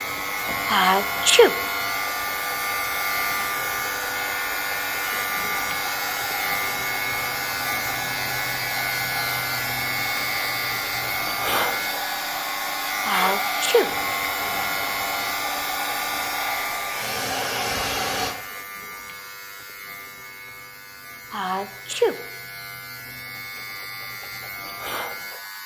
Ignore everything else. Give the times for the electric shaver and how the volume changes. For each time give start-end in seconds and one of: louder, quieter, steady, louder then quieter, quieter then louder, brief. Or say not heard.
0.0-25.6 quieter.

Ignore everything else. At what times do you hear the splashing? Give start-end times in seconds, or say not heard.
not heard.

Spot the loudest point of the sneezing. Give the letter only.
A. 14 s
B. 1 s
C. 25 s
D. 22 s
B.